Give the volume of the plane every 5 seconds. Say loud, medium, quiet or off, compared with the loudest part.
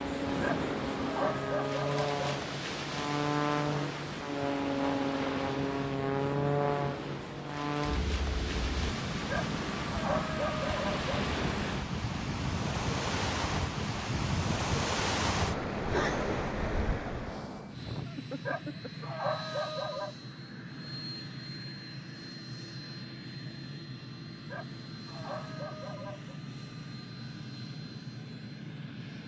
loud, loud, medium, medium, medium, medium.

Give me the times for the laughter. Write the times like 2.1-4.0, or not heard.
17.8-19.2.